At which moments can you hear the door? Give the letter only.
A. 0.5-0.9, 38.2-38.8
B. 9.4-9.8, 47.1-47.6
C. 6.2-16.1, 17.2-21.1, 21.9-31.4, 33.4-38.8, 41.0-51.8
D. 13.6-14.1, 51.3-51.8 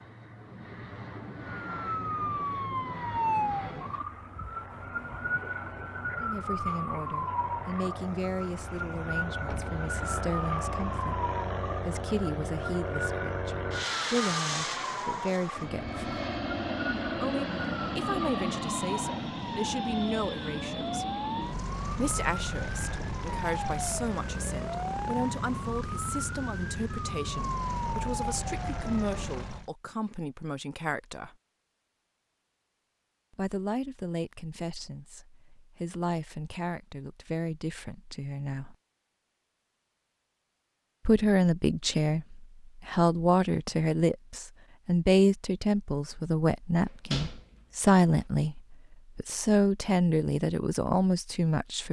B.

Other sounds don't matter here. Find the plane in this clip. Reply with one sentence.
The plane can be heard from 0.0 to 29.7 s.